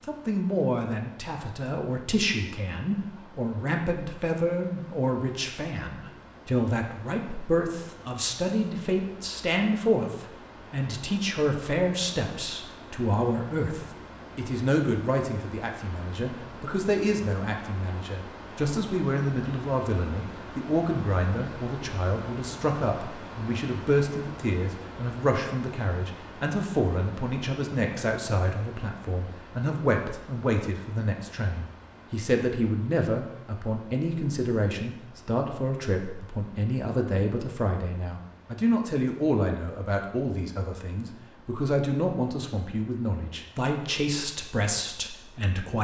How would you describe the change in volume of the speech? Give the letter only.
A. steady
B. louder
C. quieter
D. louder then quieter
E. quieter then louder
A.